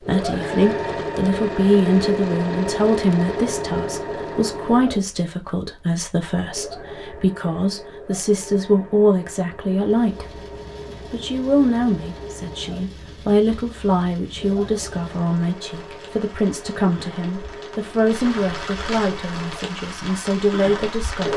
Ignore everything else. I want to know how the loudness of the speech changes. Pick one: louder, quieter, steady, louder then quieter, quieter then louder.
steady.